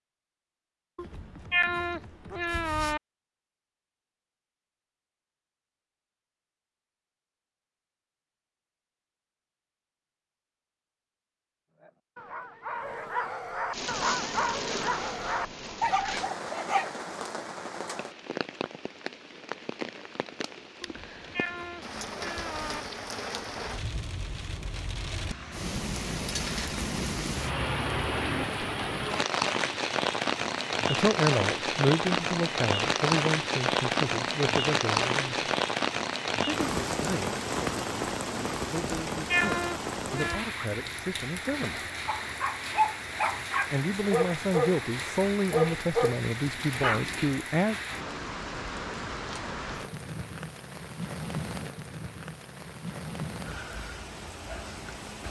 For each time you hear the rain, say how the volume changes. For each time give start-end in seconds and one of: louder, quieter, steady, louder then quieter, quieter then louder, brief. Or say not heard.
13.7-55.2 louder then quieter.